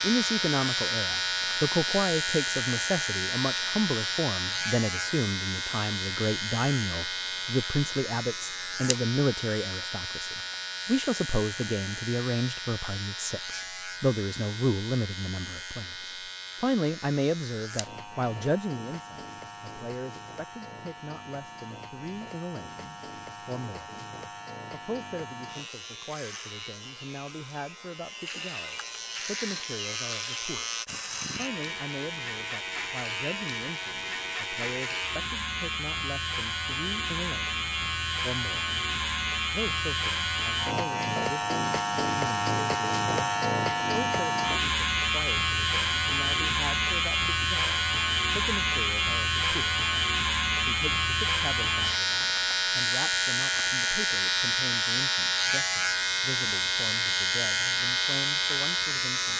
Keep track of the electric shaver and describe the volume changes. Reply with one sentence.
The loudness of the electric shaver goes down, then up.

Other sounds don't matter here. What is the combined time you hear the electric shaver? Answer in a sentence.
You can hear the electric shaver for 59 seconds altogether.